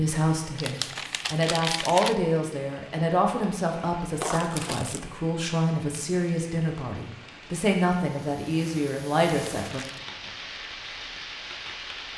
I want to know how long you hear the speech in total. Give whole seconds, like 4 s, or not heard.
10 s.